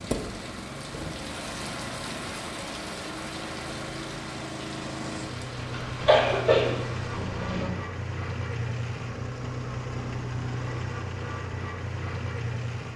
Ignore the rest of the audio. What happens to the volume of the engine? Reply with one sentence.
The loudness of the engine goes up.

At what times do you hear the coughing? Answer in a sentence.
You can hear the coughing from 5.7 to 7.7 s.